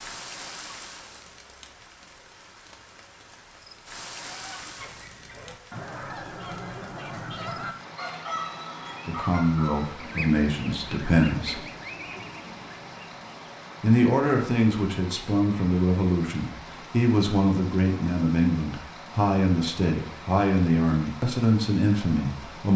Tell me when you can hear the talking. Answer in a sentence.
You can hear the talking from 9.1 to 11.6 s and from 13.8 to 22.7 s.